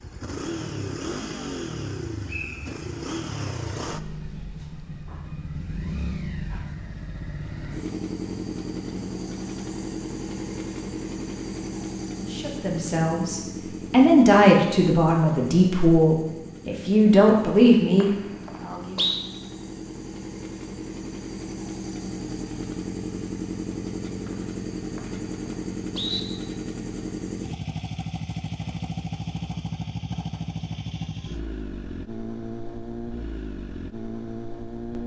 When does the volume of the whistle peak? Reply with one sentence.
The volume of the whistle peaks at 19 seconds.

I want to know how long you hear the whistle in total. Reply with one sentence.
You can hear the whistle for 4 seconds altogether.